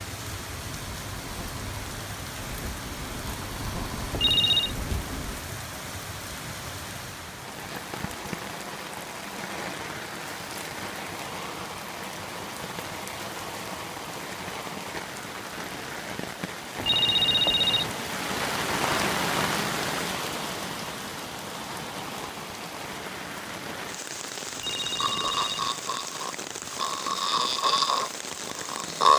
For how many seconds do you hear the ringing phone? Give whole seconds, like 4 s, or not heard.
3 s.